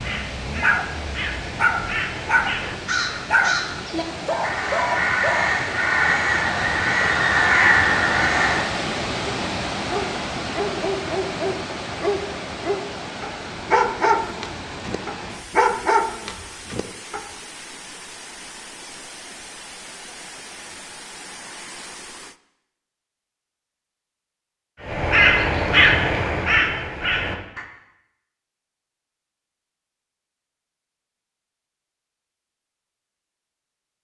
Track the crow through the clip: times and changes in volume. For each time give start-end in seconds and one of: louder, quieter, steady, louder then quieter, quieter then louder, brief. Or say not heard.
0.0-8.7 louder
24.8-27.6 brief.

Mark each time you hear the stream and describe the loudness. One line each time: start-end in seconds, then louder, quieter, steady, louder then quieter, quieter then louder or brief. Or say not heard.
0.0-22.4 louder then quieter.